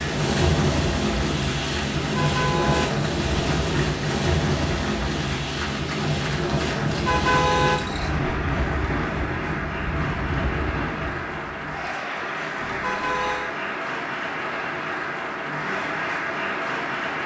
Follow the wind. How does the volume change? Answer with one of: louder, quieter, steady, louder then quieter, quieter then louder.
quieter.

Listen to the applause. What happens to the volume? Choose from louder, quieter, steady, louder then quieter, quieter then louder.
louder.